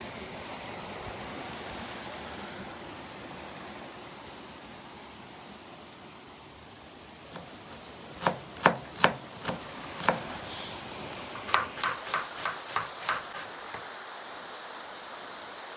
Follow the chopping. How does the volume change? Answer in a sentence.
The loudness of the chopping goes down.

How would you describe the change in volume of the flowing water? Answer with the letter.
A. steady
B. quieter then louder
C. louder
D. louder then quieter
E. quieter
B.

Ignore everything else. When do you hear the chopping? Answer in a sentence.
The chopping can be heard from 7.3 to 13.8 s.